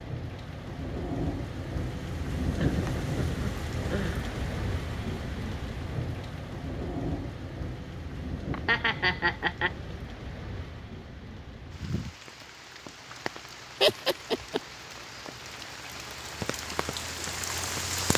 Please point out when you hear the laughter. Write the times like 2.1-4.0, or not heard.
2.5-4.2, 8.5-9.7, 13.8-14.6.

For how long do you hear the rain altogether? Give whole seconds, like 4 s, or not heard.
18 s.